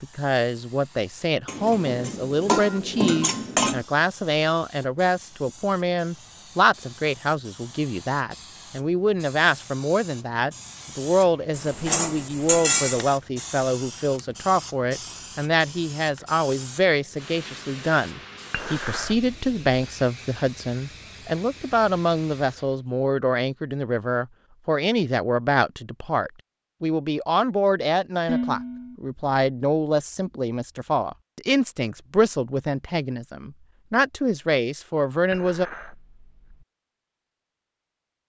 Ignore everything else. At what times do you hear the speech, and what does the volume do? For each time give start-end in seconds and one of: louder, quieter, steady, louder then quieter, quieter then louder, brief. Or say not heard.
0.0-35.7 steady.